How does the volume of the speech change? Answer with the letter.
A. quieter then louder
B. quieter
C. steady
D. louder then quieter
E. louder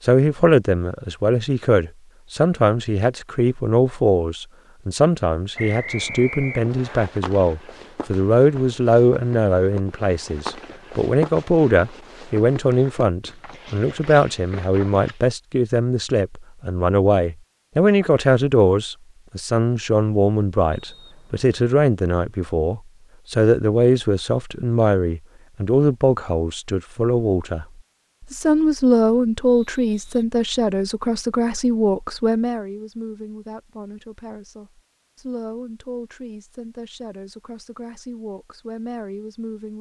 B.